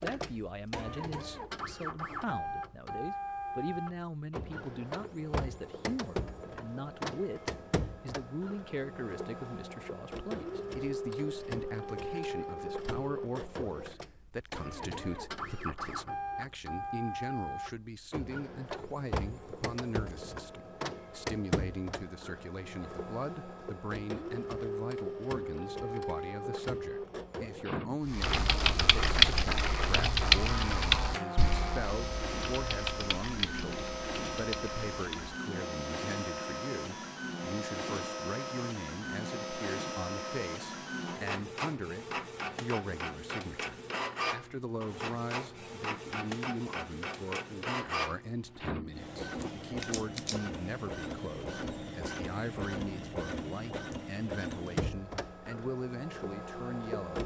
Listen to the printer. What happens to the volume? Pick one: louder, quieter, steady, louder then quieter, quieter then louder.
steady.